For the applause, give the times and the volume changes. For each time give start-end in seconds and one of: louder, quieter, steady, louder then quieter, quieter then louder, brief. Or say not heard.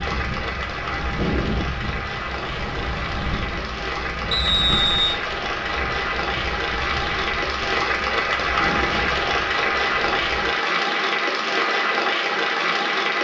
0.0-13.1 louder.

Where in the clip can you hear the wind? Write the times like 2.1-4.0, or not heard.
0.0-10.6.